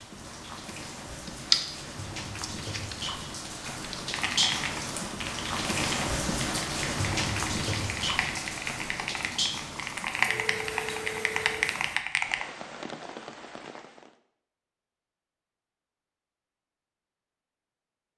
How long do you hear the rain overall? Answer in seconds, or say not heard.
14 s.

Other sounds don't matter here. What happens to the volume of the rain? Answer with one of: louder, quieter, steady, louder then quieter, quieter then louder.
louder then quieter.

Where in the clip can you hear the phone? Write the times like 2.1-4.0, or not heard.
10.3-11.7.